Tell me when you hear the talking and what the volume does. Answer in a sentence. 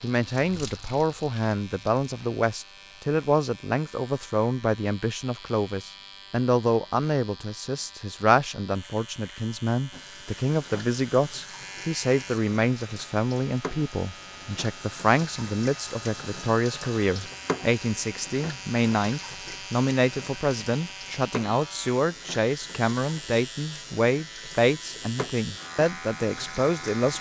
The talking can be heard from 0.0 to 27.1 s, at a steady volume.